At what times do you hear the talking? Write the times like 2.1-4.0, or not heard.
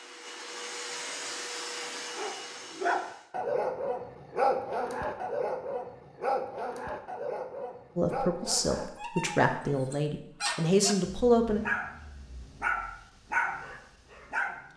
8.0-11.6.